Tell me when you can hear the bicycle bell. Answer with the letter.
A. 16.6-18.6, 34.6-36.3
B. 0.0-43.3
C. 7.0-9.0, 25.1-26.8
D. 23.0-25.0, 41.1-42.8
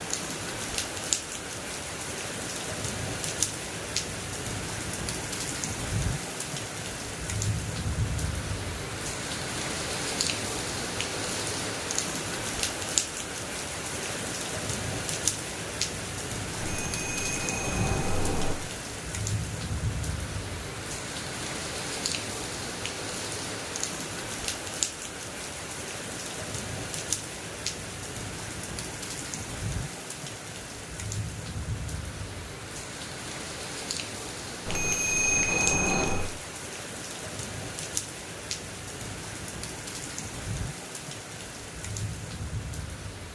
A.